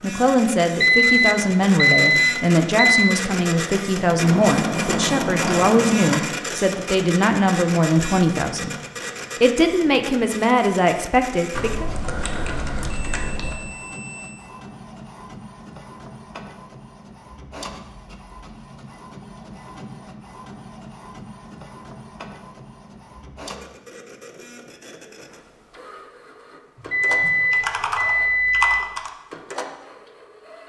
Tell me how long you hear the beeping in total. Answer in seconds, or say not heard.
7 s.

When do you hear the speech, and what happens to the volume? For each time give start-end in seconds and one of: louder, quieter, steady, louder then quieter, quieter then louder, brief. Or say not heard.
0.0-8.8 steady
9.4-11.8 brief.